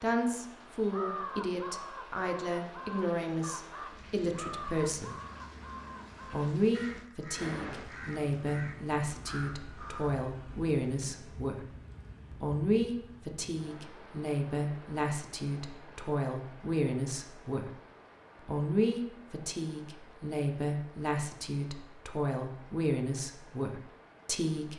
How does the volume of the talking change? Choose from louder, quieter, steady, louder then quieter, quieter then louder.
steady.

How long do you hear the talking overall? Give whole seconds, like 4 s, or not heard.
22 s.